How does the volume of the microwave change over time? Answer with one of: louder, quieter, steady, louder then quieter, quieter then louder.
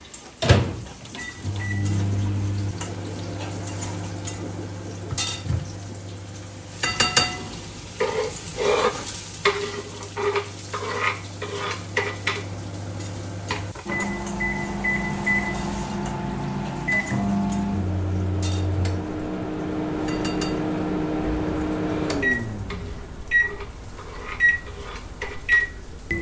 quieter then louder.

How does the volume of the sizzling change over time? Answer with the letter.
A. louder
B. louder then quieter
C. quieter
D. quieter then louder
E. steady
B.